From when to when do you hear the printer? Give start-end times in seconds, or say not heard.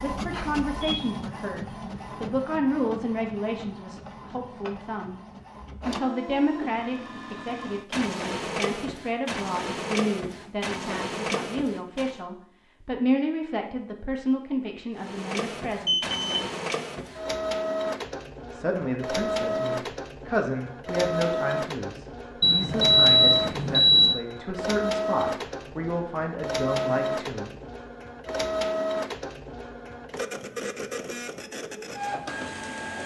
0.0-12.2, 14.9-33.0.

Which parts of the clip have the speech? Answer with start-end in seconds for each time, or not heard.
0.0-5.2, 5.8-16.0, 18.5-27.5.